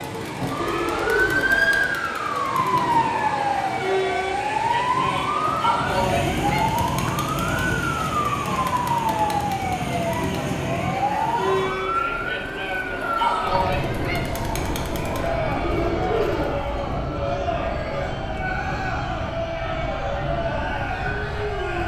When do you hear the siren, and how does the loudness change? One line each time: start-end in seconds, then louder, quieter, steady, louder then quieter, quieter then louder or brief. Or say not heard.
0.0-21.8 quieter.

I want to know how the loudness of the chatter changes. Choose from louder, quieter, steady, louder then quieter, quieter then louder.
steady.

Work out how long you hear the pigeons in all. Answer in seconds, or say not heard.
3 s.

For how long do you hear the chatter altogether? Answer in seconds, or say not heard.
22 s.